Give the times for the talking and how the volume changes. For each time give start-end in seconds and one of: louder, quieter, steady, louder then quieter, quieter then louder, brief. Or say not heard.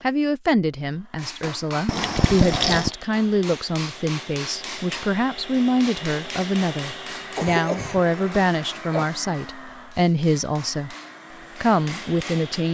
0.0-10.9 steady
11.6-12.6 brief.